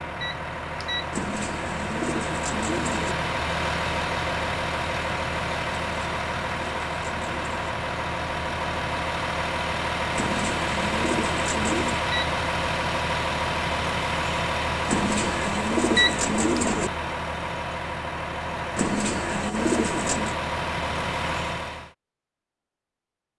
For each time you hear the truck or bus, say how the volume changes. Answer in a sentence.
The truck or bus can be heard from 0.0 to 21.9 s, at a steady volume.